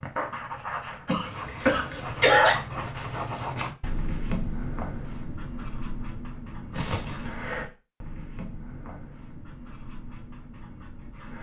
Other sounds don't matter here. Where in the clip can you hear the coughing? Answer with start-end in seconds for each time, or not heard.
1.1-2.5, 6.7-7.3.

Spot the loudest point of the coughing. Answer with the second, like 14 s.
2 s.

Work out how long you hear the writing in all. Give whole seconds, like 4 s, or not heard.
11 s.